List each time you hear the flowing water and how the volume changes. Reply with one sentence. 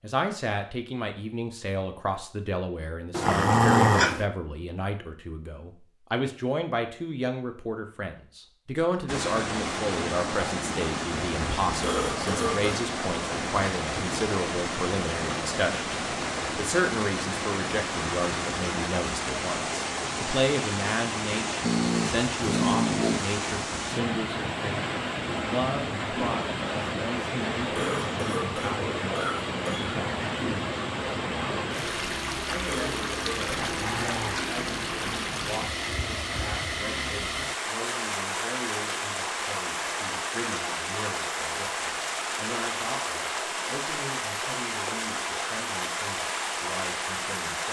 You can hear the flowing water from 9.1 to 47.6 s, at a steady volume.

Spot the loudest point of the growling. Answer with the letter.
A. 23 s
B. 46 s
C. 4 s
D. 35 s
C.